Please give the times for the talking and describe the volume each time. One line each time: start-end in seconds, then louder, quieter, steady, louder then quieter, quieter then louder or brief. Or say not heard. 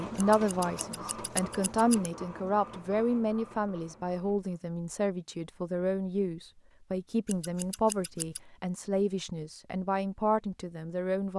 0.0-11.3 steady.